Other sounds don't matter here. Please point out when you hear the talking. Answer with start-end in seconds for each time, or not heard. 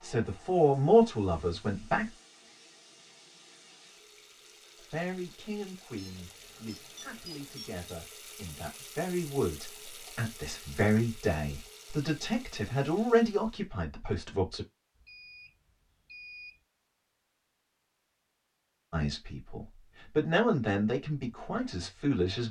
0.0-2.1, 4.9-14.7, 18.9-22.4.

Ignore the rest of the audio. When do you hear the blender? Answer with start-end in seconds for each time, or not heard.
not heard.